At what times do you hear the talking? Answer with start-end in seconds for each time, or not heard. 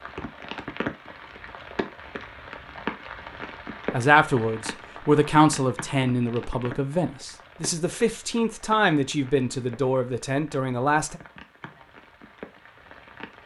3.9-11.2.